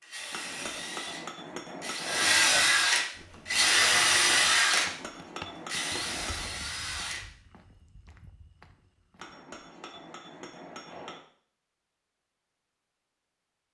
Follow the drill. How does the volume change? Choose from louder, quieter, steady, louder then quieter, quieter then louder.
louder then quieter.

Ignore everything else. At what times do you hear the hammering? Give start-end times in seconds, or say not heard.
0.3-2.4, 4.7-6.5, 9.2-11.2.